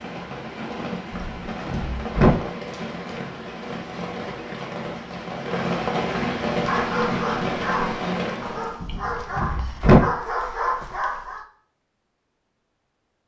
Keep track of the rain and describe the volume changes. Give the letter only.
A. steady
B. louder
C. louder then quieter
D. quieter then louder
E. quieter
B.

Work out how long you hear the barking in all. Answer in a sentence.
The barking can be heard for 5 seconds in total.